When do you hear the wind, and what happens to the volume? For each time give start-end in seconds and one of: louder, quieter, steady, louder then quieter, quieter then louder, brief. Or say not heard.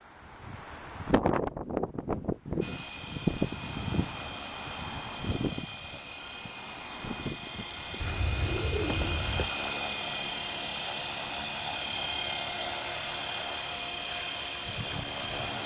0.0-9.1 quieter.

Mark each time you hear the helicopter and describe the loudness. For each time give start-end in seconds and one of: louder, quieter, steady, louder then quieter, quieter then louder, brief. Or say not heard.
2.6-15.6 louder.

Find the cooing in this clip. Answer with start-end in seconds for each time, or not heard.
8.0-9.5.